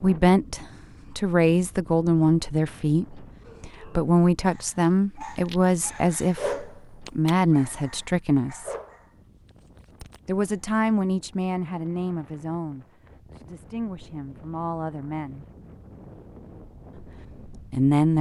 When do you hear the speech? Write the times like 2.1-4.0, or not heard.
0.0-8.7, 10.2-15.4, 17.5-18.1.